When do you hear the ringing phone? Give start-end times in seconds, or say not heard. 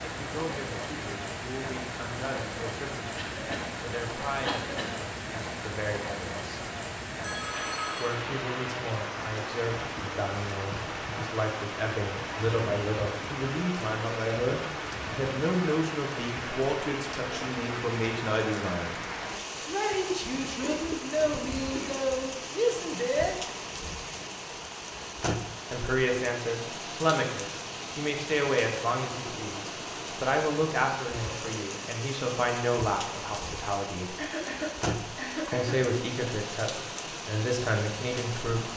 7.2-8.2.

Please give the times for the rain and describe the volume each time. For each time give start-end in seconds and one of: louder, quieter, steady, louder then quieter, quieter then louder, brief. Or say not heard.
0.0-38.7 steady.